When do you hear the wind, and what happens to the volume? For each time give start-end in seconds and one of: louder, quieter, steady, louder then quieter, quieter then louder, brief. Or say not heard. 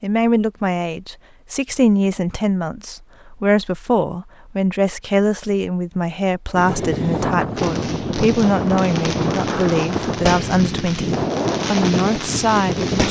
6.5-13.0 steady.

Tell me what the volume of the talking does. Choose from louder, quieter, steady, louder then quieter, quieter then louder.
steady.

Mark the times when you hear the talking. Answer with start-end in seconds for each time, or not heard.
0.0-13.0.